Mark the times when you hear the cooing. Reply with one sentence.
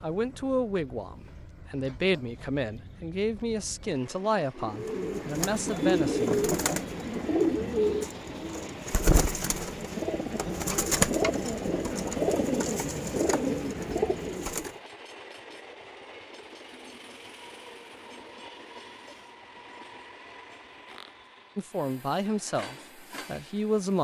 You can hear the cooing from 4.5 to 14.8 s.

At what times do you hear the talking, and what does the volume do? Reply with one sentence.
You can hear the talking from 0.0 to 6.5 s, at a steady volume; and briefly from 21.6 to 23.9 s.